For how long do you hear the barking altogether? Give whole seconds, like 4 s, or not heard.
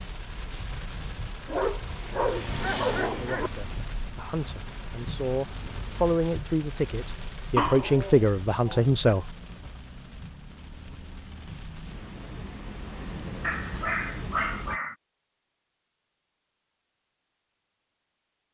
5 s.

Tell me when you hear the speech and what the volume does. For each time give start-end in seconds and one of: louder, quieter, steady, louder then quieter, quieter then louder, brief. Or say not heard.
3.1-9.3 louder.